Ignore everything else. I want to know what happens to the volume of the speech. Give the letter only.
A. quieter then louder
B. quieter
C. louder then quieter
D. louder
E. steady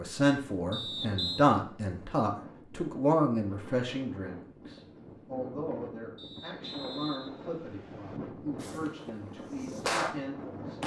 B.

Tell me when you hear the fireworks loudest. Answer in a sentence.
The loudest moment of the fireworks is at 10 seconds.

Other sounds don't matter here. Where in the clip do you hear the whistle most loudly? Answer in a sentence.
The loudest moment of the whistle is at 1 second.